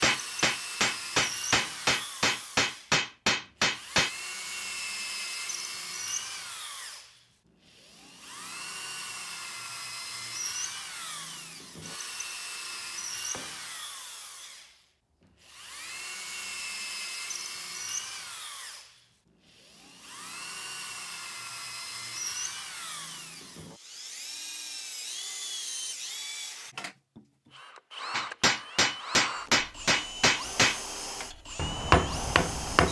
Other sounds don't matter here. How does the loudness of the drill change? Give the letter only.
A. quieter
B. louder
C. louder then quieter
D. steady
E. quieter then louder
D.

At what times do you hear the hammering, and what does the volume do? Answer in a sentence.
You can hear the hammering from 0.0 to 4.1 s, at a steady volume; and from 28.1 to 32.8 s, getting quieter then louder.